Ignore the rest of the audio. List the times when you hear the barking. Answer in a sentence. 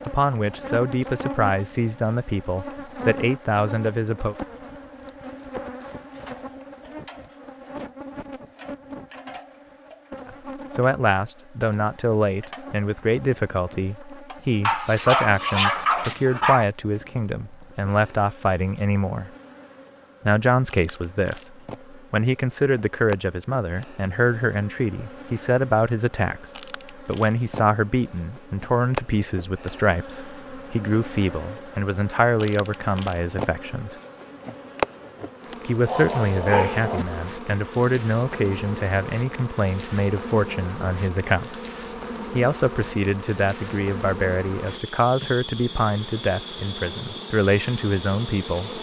You can hear the barking from 14.6 to 16.6 s and from 35.9 to 37.0 s.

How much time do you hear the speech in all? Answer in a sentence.
You can hear the speech for 39 seconds altogether.